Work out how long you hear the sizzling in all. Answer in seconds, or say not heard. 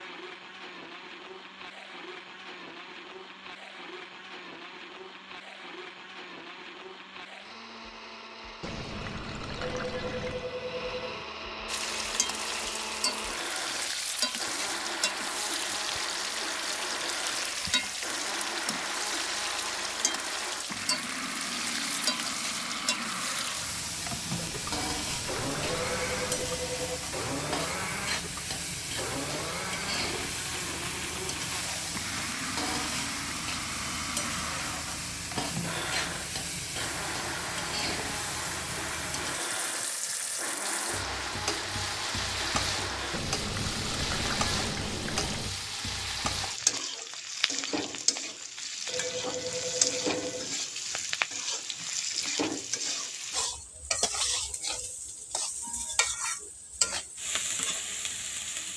47 s.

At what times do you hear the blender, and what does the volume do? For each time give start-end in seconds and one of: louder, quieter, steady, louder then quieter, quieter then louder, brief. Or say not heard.
0.0-43.2 louder.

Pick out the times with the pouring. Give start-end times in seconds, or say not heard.
8.6-10.5, 24.4-26.6, 43.1-45.5.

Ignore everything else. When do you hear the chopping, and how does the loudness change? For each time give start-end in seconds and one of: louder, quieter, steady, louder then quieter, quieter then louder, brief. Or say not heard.
not heard.